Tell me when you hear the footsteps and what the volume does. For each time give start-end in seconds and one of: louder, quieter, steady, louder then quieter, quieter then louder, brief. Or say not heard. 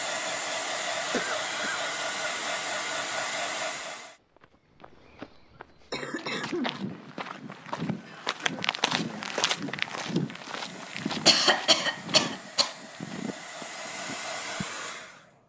4.3-14.7 louder then quieter.